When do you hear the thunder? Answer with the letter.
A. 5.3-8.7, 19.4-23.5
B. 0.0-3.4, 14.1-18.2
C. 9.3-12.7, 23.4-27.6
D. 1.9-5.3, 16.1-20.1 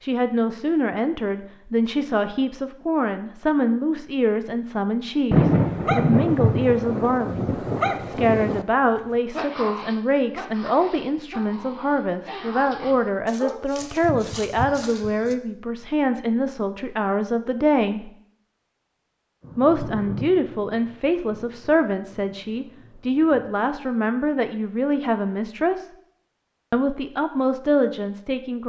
A.